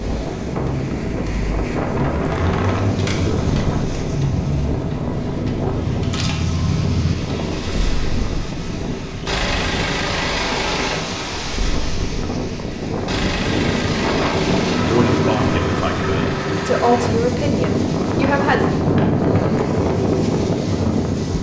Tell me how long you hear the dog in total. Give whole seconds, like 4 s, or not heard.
not heard.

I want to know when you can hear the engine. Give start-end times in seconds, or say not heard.
0.1-17.1.